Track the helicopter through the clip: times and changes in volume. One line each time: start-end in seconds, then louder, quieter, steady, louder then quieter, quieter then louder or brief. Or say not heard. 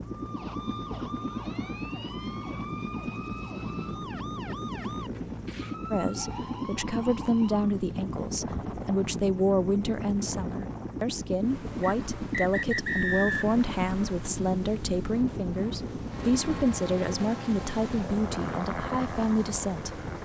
0.0-20.1 steady.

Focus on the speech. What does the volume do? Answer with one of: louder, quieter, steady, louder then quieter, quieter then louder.
steady.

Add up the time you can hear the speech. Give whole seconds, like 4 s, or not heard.
14 s.